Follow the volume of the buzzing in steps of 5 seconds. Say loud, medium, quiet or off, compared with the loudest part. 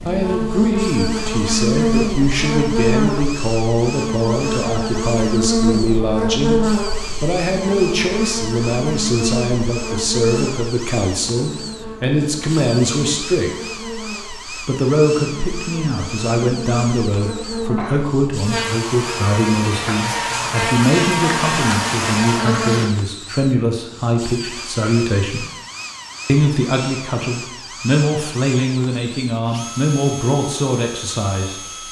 loud, loud, medium, medium, loud, off, off.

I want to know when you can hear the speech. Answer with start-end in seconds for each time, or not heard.
0.0-13.5, 14.7-25.4, 26.2-31.6.